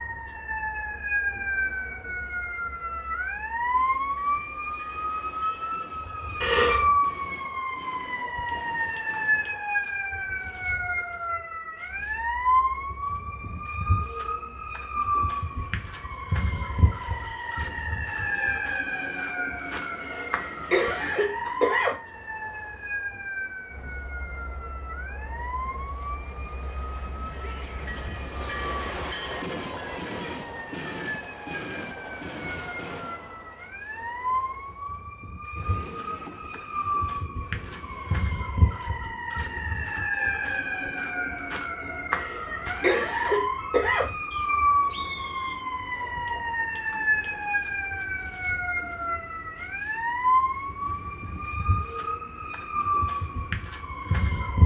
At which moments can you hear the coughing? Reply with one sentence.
You can hear the coughing from 6.4 to 6.9 s, from 20.0 to 21.9 s and from 42.1 to 44.1 s.